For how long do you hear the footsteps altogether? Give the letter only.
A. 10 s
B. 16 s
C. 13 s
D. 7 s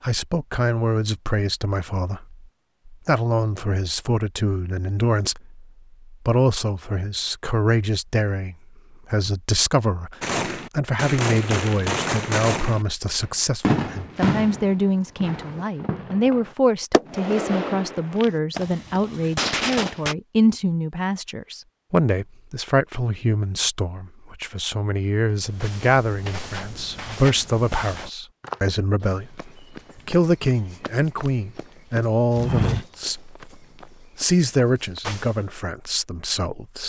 A.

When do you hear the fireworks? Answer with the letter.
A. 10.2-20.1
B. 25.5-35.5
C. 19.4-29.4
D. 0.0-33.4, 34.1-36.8
A.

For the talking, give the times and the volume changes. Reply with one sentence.
The talking can be heard from 0.0 to 33.4 s, at a steady volume; and briefly from 34.1 to 36.8 s.